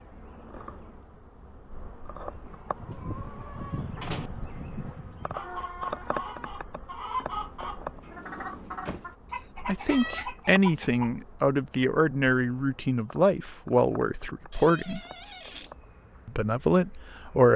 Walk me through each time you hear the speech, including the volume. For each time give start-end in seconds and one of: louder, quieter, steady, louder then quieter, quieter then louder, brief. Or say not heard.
9.7-15.0 steady
16.2-17.5 brief.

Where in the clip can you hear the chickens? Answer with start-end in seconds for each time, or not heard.
2.5-11.1.